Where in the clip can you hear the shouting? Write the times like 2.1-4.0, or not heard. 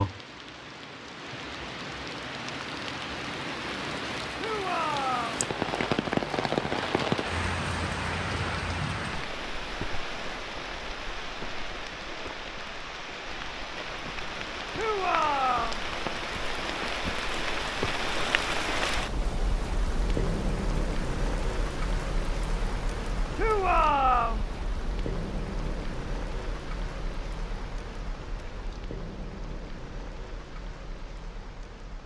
4.3-5.5, 14.8-15.8, 23.4-24.4.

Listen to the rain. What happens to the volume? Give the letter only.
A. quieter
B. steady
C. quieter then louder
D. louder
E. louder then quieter
A.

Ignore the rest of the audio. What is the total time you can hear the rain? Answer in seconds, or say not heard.
32 s.